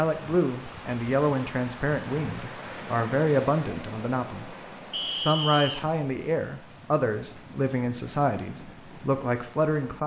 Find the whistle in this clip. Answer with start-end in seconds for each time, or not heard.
4.9-5.8.